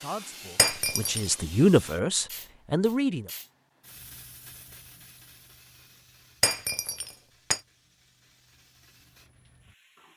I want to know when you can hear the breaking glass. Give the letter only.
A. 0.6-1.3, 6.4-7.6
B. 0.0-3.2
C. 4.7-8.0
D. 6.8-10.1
A.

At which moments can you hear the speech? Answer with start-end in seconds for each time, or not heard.
0.0-3.2.